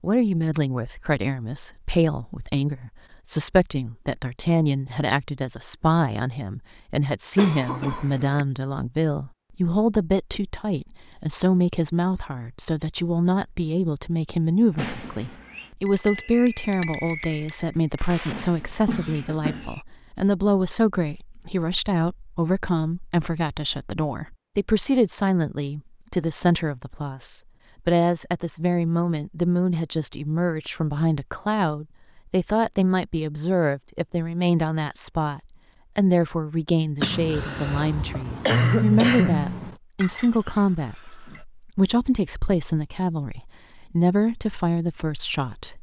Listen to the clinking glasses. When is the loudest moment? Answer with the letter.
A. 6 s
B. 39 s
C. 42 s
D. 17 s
D.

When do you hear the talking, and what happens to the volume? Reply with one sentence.
The talking can be heard from 0.0 to 45.7 s, at a steady volume.